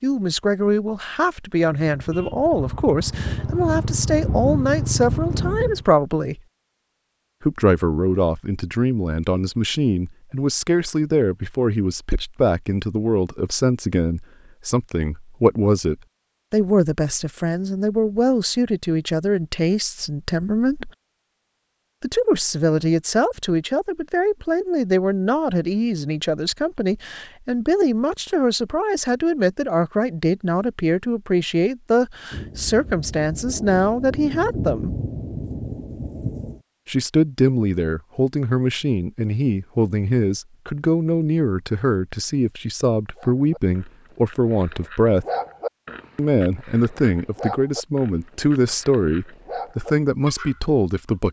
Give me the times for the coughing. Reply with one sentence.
You can't hear the coughing here.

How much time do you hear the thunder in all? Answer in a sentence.
The thunder can be heard for 7 seconds in total.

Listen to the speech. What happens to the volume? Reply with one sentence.
The volume of the speech stays about the same.